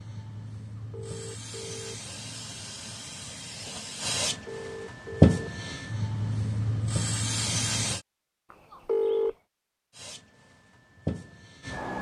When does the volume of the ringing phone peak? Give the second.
9 s.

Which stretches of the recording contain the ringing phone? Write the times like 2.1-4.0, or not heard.
0.8-2.0, 4.3-5.4, 8.5-9.3.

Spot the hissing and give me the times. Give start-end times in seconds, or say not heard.
0.0-8.1, 9.9-11.9.